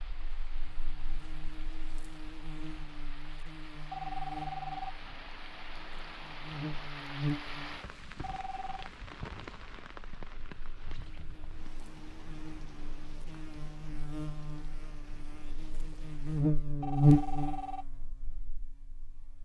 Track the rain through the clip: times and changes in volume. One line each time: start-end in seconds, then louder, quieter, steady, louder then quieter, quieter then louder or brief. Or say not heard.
0.0-16.4 louder then quieter.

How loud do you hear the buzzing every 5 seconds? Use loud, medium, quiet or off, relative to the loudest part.
quiet, medium, quiet, loud.